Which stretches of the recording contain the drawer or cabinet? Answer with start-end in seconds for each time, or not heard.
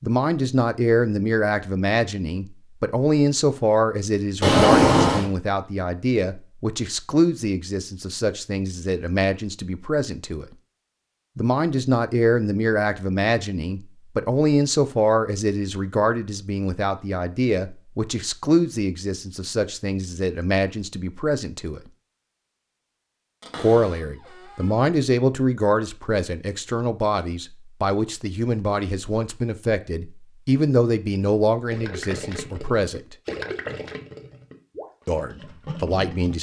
4.4-5.3, 23.4-24.7.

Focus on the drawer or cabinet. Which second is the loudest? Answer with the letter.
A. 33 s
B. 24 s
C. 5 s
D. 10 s
C.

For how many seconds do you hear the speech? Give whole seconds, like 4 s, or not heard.
32 s.